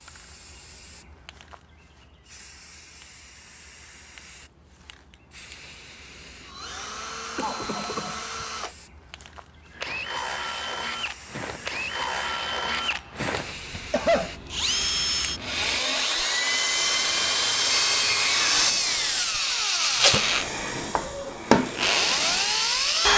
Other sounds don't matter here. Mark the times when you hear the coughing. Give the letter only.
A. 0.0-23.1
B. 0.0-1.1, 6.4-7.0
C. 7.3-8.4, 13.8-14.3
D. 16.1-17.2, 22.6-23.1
C.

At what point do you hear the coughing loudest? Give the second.
14 s.